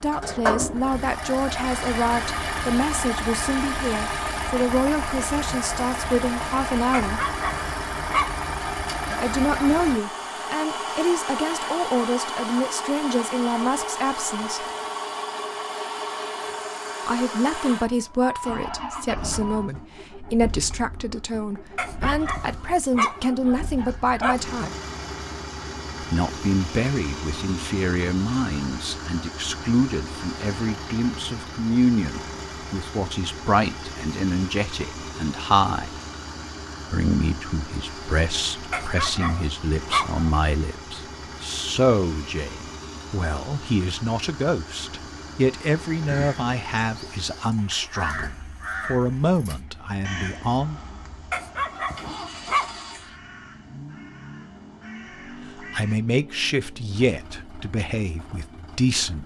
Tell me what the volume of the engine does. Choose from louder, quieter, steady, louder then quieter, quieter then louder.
quieter.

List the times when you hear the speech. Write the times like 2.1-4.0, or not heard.
0.0-7.2, 9.2-14.7, 17.1-24.7, 26.0-36.0, 36.9-50.8, 55.5-59.2.